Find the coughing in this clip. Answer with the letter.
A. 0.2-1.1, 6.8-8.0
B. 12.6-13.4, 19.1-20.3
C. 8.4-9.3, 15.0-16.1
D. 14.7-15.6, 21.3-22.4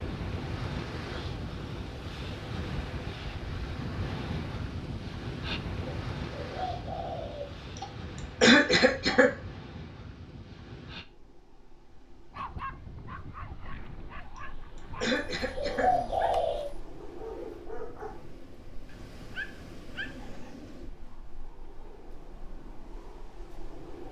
C.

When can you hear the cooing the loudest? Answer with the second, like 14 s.
16 s.